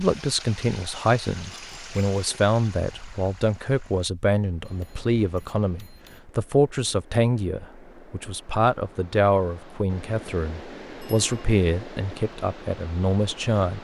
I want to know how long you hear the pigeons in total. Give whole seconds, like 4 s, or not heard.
not heard.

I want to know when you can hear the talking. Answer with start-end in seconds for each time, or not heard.
0.0-13.7.